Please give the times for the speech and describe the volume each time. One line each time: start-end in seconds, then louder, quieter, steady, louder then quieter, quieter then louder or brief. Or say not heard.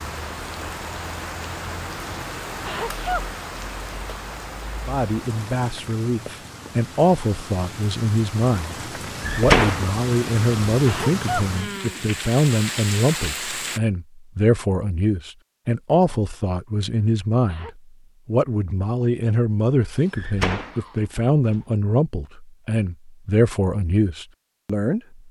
4.8-25.0 steady.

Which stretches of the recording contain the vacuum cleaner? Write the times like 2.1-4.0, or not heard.
not heard.